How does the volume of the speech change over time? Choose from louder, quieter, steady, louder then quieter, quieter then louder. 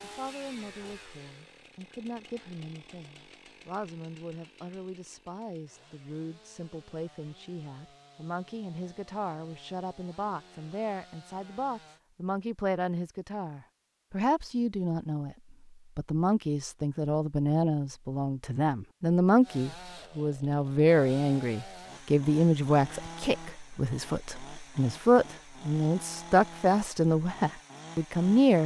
louder.